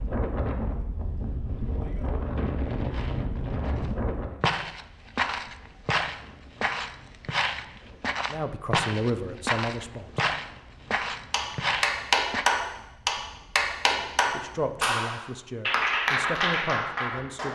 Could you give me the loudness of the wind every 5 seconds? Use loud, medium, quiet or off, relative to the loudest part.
loud, quiet, quiet, off.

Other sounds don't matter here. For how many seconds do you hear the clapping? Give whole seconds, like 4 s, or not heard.
6 s.